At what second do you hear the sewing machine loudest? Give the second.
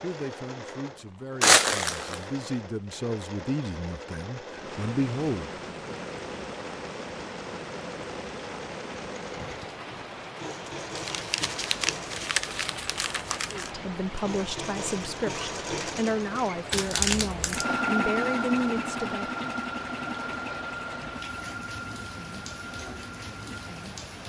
18 s.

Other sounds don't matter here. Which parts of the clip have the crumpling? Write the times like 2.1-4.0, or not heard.
1.4-2.2, 10.9-13.7, 16.7-17.6.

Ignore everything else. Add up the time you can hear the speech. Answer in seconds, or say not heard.
12 s.